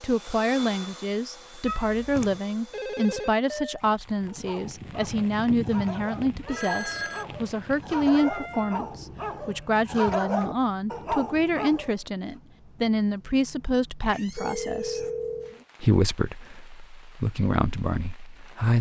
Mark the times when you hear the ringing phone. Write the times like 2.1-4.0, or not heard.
2.7-3.8, 6.5-7.2, 14.3-15.6.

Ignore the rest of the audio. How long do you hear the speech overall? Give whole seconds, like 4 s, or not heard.
18 s.